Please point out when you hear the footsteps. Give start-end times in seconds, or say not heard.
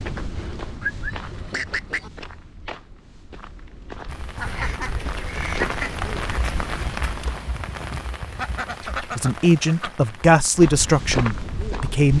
0.0-7.5, 10.6-12.1.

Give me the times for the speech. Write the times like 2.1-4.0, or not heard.
9.0-12.1.